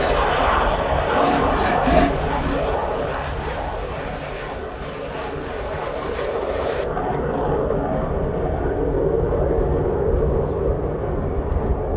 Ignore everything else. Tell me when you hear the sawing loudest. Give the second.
2 s.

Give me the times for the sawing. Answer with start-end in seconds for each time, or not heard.
0.0-2.5.